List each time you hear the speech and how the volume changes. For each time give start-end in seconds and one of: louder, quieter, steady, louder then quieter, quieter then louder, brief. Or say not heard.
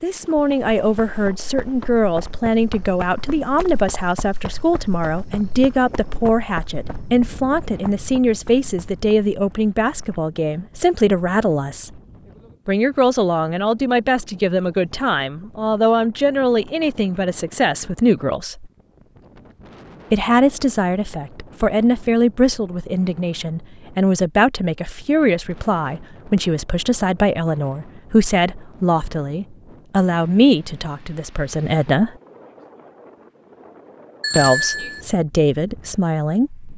0.0-12.0 steady
12.7-18.7 steady
20.1-32.1 steady
34.4-36.7 brief.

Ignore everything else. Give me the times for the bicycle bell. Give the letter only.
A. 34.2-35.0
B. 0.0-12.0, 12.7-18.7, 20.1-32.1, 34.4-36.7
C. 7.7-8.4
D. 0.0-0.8
A.